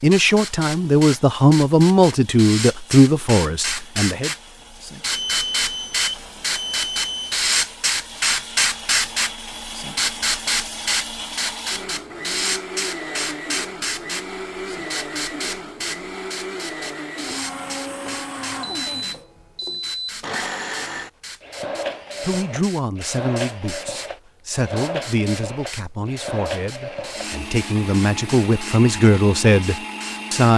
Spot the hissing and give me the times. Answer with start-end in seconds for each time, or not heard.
0.0-30.5.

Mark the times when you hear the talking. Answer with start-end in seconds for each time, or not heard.
0.0-4.3, 22.2-30.5.